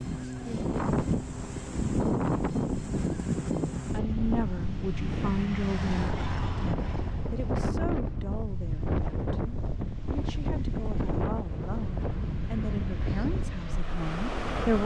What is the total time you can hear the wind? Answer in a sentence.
The wind can be heard for 15 seconds in total.